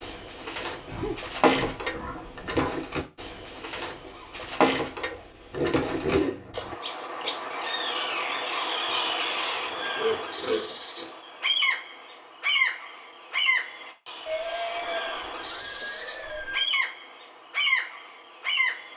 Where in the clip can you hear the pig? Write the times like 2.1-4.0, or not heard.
0.8-2.7, 5.5-6.8, 9.6-11.1, 14.2-16.7.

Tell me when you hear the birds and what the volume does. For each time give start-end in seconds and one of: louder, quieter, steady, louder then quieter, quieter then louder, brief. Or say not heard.
0.0-18.9 steady.